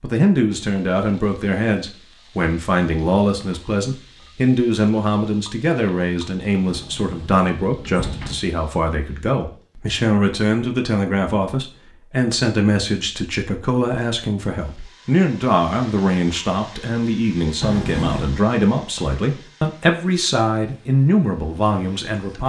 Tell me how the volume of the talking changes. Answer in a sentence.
The loudness of the talking stays about the same.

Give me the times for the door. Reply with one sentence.
You can hear the door from 6.7 to 8.4 s and from 17.6 to 18.4 s.